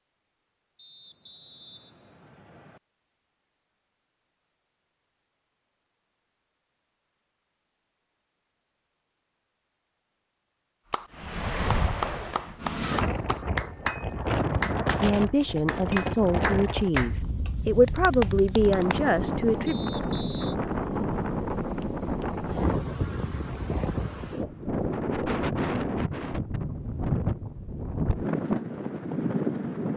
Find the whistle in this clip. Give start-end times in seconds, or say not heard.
0.8-2.8, 19.6-20.6.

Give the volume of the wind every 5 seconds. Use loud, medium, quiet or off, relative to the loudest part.
off, off, loud, loud, loud, loud.